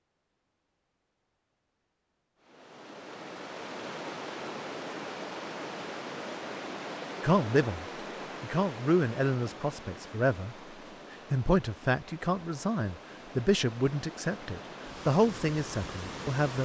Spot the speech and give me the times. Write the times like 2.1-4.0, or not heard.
7.2-10.6, 11.3-16.6.